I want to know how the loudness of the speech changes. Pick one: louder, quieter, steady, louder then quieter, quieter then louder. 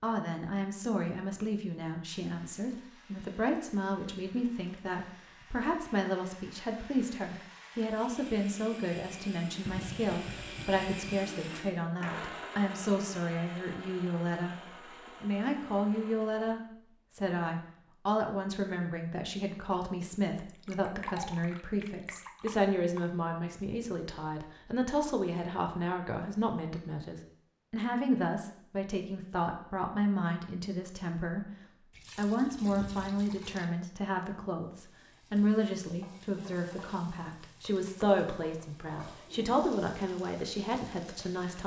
steady.